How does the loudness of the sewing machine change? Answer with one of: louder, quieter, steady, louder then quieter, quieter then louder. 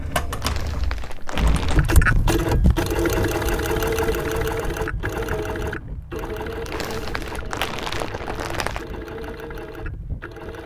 quieter.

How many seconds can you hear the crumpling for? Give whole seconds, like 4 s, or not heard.
4 s.